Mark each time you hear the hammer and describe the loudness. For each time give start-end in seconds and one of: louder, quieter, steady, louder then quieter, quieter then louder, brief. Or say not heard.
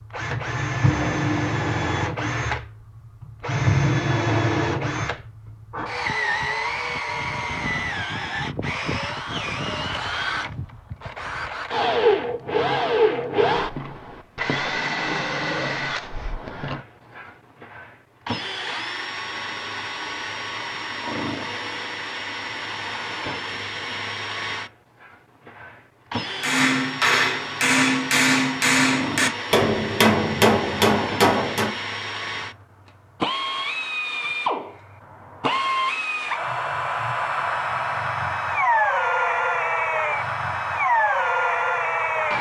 26.4-31.8 steady.